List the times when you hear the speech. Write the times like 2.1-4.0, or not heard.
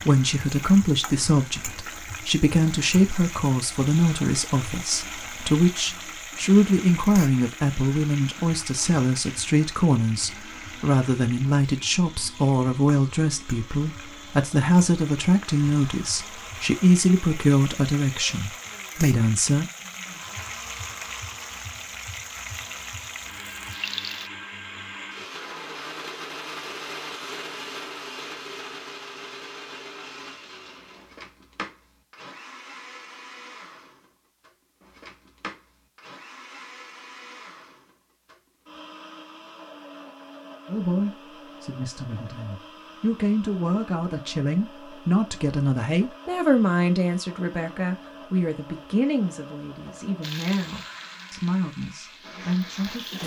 0.1-19.6, 40.6-53.2.